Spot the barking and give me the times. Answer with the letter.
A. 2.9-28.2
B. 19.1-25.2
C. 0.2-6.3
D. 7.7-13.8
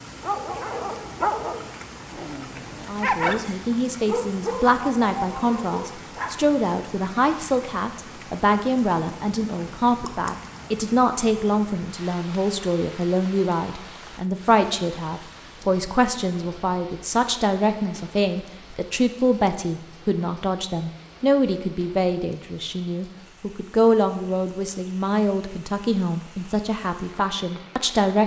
C.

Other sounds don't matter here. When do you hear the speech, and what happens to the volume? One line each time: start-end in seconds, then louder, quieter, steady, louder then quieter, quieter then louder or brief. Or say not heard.
2.9-28.2 steady.